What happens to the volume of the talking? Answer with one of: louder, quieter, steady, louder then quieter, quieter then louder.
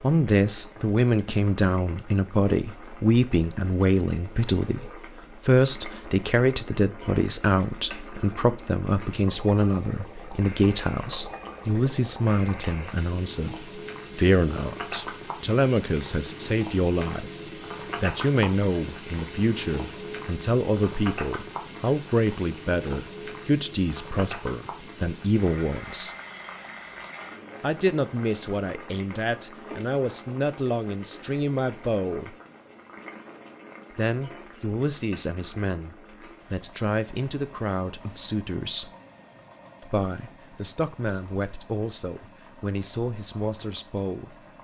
quieter.